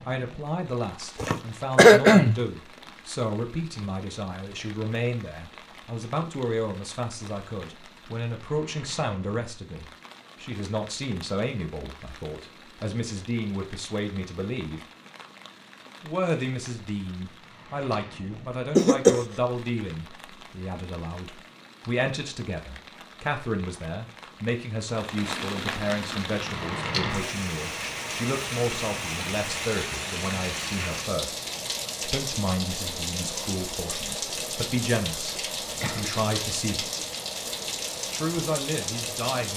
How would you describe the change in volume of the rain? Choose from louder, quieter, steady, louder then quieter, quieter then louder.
louder.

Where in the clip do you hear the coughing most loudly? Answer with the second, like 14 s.
2 s.